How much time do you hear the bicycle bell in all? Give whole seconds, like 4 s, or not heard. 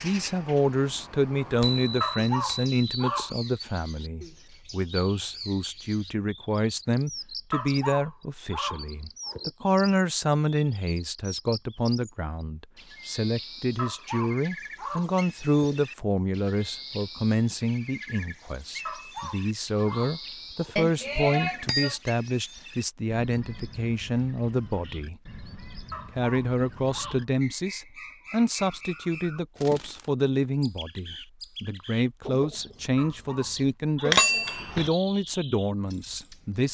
3 s.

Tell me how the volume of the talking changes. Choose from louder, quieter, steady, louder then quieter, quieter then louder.
steady.